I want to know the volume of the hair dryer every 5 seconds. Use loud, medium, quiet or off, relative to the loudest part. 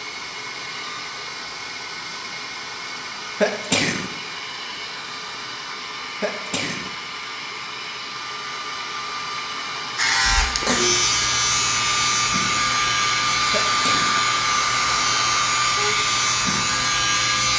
medium, medium, loud, loud.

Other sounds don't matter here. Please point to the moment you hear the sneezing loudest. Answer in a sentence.
The loudest moment of the sneezing is at 4 seconds.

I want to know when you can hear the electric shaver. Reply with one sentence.
The electric shaver can be heard from 9.9 to 17.5 s.